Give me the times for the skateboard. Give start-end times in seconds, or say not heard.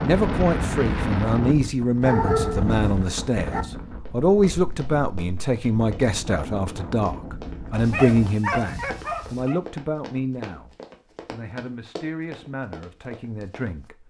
not heard.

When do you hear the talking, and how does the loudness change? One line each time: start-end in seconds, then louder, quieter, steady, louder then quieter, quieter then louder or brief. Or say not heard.
0.0-14.0 quieter.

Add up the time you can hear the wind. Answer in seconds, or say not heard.
8 s.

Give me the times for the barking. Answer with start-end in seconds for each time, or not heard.
2.0-3.6, 7.7-9.6.